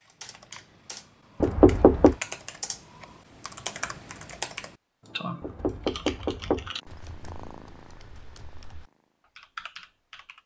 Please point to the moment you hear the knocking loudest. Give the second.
2 s.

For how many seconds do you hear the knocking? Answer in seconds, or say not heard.
2 s.